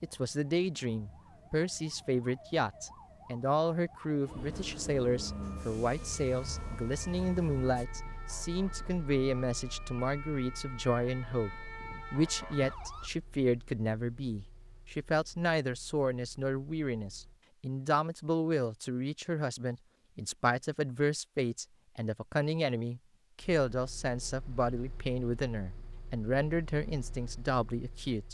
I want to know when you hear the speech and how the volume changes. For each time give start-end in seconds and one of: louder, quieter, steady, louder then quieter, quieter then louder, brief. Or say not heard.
0.0-28.2 steady.